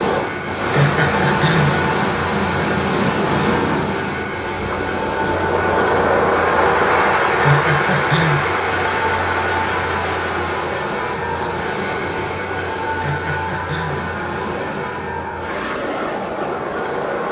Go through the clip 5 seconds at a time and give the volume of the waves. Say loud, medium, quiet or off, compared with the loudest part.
loud, loud, medium, medium.